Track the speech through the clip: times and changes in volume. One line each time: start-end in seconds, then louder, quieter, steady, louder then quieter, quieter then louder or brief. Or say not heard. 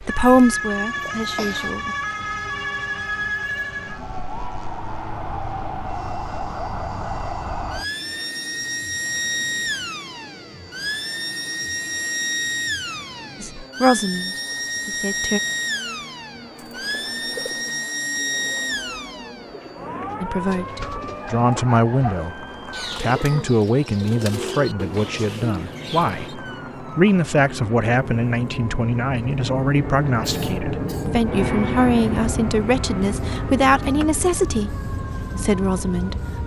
0.0-1.9 brief
13.4-15.4 brief
20.2-36.2 steady.